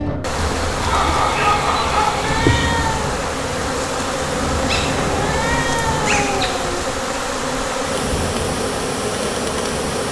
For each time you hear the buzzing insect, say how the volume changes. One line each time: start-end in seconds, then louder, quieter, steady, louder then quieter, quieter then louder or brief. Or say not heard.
0.0-10.0 steady.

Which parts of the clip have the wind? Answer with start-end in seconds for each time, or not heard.
0.0-10.0.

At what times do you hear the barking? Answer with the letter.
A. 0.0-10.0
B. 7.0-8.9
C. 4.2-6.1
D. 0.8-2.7
D.